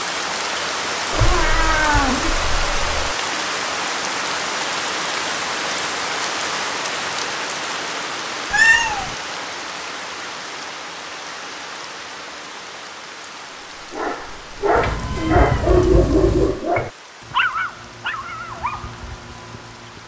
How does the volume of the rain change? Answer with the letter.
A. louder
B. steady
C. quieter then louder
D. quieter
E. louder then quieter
D.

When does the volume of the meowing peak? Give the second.
9 s.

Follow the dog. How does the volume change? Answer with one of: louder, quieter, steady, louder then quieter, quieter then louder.
louder then quieter.